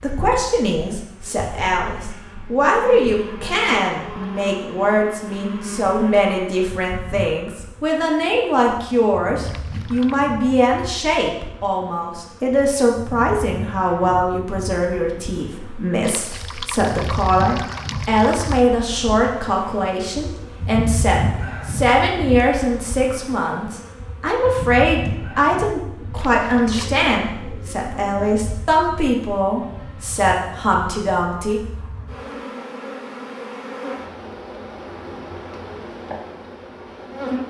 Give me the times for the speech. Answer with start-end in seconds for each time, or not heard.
0.0-31.6.